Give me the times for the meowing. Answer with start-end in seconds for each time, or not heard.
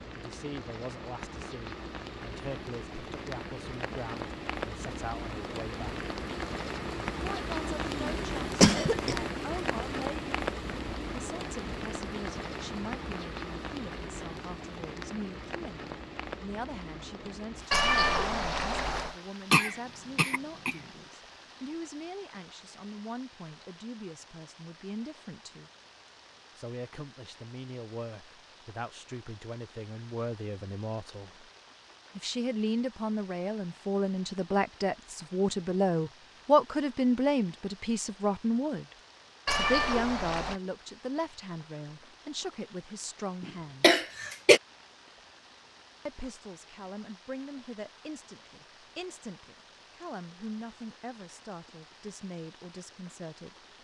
17.7-19.1, 39.5-40.6.